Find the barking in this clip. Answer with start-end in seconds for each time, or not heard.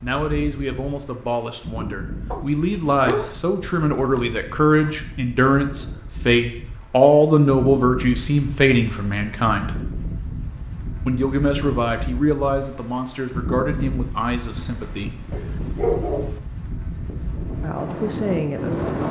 2.3-5.0, 15.3-16.4.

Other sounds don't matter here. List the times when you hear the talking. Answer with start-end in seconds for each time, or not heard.
0.0-9.8, 11.1-15.2, 17.6-19.0.